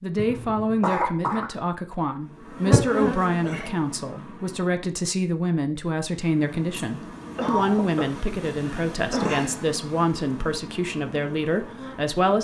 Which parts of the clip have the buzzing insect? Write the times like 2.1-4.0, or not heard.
2.2-4.8, 6.0-12.3.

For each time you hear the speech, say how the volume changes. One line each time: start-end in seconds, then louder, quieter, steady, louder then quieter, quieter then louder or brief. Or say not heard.
0.0-12.3 steady.